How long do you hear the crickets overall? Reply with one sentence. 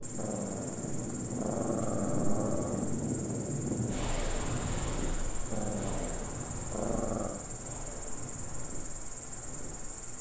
You can hear the crickets for 10 seconds altogether.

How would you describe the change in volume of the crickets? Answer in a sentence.
The loudness of the crickets stays about the same.